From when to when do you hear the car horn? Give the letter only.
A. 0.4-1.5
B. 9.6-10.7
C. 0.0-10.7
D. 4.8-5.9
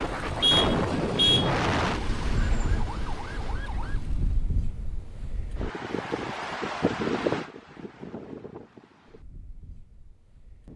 A.